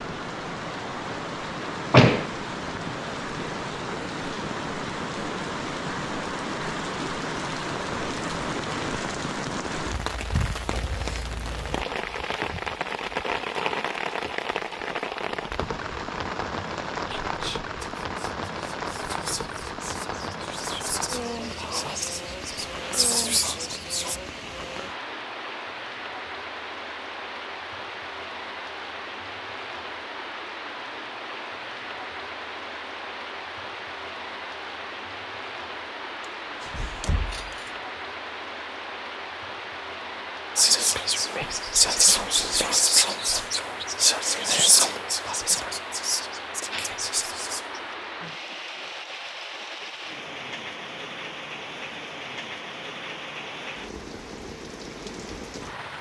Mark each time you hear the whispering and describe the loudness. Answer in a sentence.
You can hear the whispering from 17.2 to 24.2 s, getting louder; and from 40.5 to 47.8 s, getting quieter.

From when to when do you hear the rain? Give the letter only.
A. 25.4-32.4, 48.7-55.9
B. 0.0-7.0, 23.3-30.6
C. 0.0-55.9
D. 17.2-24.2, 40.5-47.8
C.